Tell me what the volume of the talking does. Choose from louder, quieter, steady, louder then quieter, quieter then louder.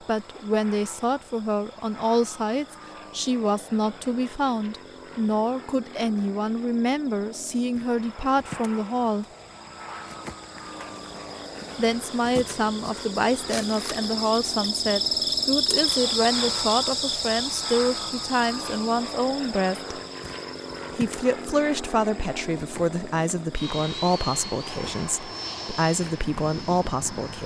steady.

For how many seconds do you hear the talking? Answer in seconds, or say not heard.
24 s.